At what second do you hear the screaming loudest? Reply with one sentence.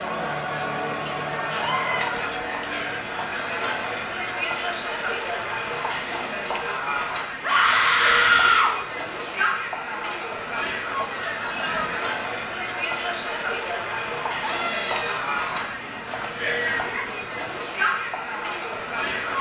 The volume of the screaming peaks at 8 seconds.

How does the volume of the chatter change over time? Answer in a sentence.
The volume of the chatter stays about the same.